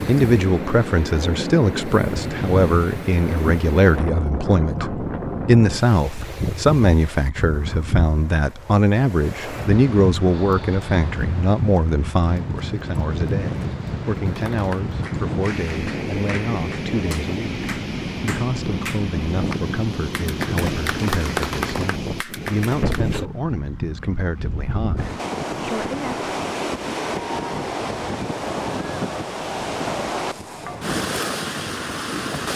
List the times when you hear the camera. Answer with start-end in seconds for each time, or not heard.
not heard.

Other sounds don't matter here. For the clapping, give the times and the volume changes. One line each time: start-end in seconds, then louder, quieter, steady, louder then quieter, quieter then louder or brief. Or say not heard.
14.2-23.1 louder.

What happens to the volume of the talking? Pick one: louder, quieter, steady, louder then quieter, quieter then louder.
quieter.